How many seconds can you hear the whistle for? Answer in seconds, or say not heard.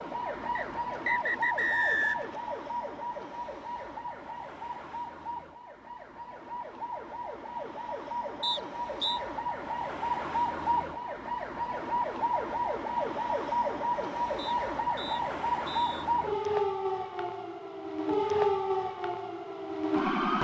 4 s.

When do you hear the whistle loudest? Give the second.
2 s.